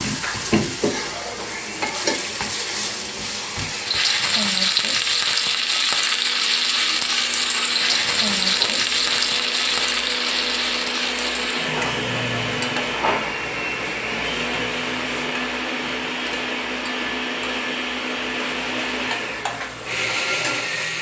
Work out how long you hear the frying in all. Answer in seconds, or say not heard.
21 s.